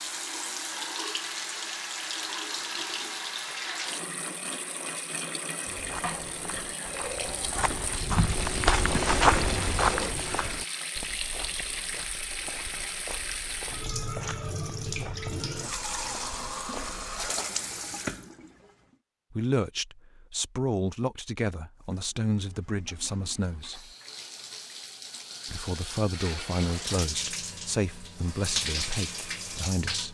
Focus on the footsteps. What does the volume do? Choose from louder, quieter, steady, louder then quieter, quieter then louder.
louder then quieter.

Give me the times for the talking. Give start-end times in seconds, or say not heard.
19.3-23.9, 25.4-30.0.